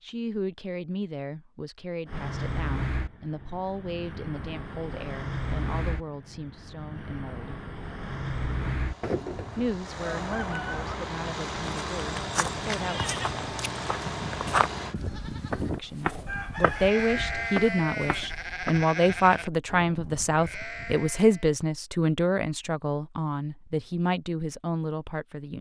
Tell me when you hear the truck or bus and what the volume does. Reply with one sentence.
The truck or bus can be heard from 2.0 to 14.9 s, at a steady volume.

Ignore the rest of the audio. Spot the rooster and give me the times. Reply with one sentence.
The rooster can be heard from 9.0 to 10.9 s and from 16.2 to 17.6 s.